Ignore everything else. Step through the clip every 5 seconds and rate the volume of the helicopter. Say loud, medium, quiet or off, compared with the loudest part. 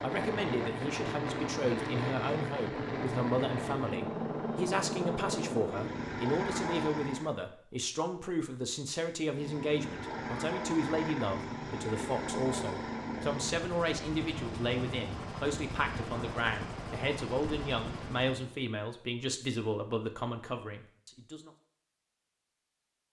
loud, loud, loud, medium, off.